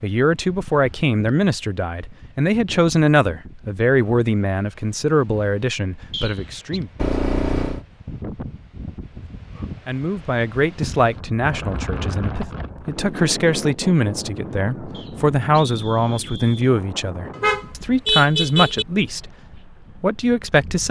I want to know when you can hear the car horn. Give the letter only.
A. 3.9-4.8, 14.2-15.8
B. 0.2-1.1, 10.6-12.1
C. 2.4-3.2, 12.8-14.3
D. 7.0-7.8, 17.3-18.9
D.